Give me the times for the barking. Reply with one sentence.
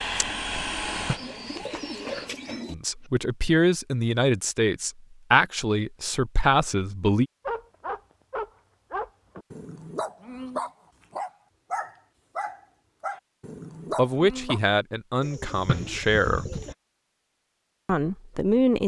You can hear the barking from 7.5 to 14.6 s.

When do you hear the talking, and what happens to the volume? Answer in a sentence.
The talking can be heard from 2.7 to 7.2 s, at a steady volume; briefly from 13.9 to 16.4 s; and briefly from 17.9 to 18.8 s.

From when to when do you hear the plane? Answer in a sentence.
You can hear the plane from 0.0 to 2.5 s.